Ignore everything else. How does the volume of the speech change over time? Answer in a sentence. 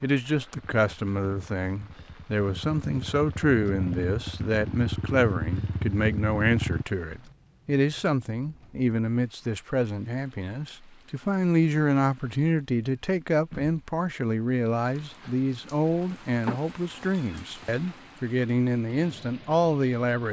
The loudness of the speech stays about the same.